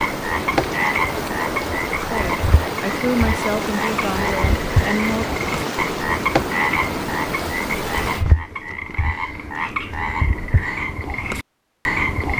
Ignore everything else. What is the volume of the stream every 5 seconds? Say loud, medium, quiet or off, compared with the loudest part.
loud, loud, off.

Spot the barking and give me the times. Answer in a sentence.
You can't hear the barking here.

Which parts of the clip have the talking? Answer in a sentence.
You can hear the talking from 2.0 to 5.2 s.